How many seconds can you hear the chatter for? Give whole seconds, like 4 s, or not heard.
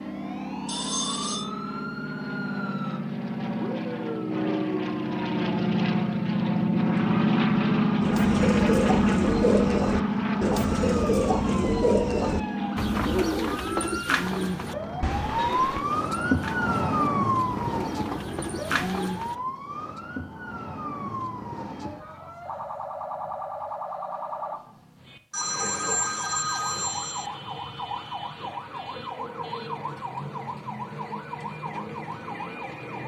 not heard.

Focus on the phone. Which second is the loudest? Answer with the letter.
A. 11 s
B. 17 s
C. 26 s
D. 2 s
C.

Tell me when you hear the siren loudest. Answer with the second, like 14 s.
17 s.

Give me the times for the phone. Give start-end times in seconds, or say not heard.
0.7-1.5, 15.0-15.8, 25.3-27.3.